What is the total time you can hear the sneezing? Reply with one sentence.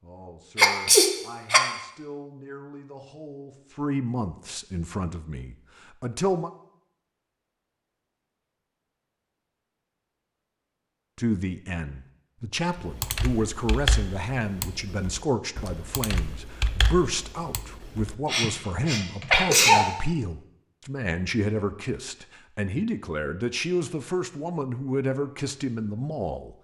The sneezing can be heard for 3 seconds in total.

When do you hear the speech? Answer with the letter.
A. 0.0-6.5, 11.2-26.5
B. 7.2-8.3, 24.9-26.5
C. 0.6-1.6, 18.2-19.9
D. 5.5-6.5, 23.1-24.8
A.